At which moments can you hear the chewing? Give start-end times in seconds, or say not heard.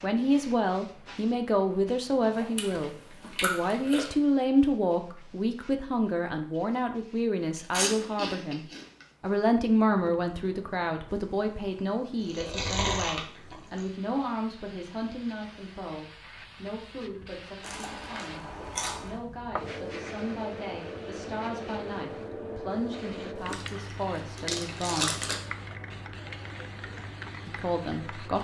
2.4-4.1, 7.5-9.1, 12.2-13.8, 17.6-19.1, 23.5-25.4.